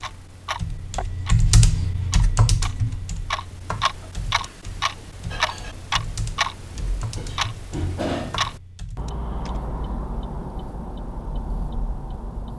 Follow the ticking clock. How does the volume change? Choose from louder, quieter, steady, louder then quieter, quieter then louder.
louder then quieter.